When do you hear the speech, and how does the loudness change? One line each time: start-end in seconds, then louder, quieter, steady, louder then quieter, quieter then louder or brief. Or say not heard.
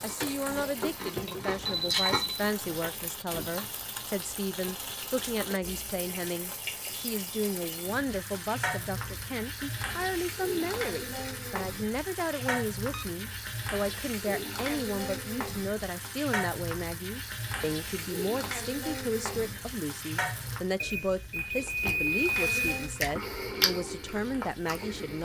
0.0-25.2 steady.